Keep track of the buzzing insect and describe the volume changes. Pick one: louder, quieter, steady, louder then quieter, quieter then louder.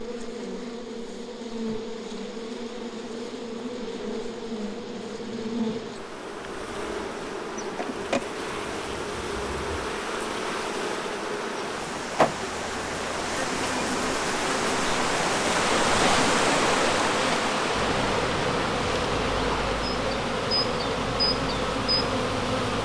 louder.